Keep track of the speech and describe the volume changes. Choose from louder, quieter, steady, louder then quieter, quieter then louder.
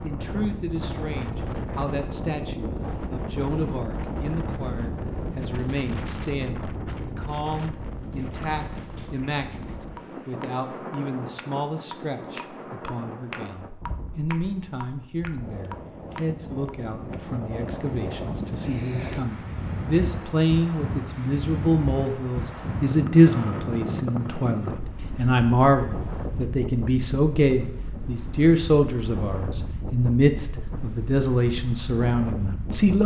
louder.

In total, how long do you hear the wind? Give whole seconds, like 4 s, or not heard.
33 s.